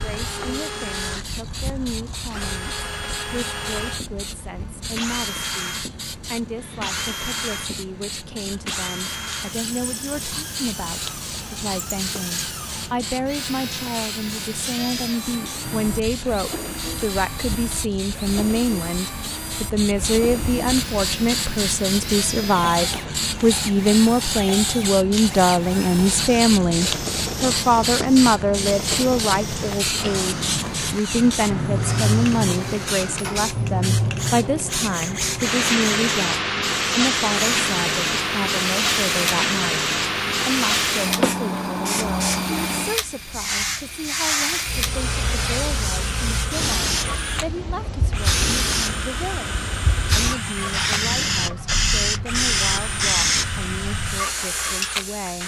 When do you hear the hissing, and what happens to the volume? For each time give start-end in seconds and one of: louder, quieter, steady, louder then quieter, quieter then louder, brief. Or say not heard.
0.0-55.4 louder.